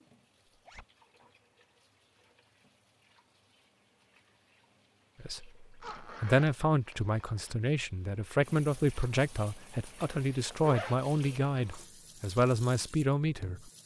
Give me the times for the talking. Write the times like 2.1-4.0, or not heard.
5.2-13.7.